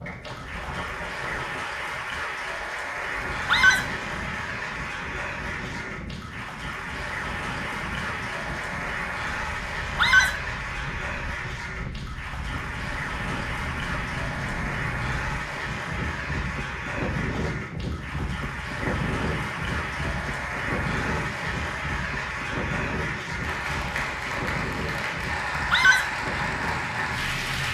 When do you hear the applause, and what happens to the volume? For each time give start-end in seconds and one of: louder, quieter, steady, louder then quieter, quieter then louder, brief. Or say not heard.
0.0-27.7 steady.